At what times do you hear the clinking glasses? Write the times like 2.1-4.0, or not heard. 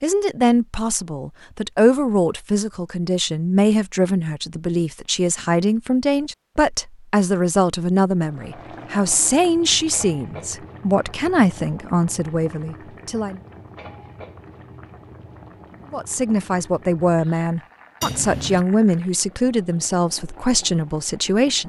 18.0-18.6.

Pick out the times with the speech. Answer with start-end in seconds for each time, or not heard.
0.0-13.4, 15.9-21.6.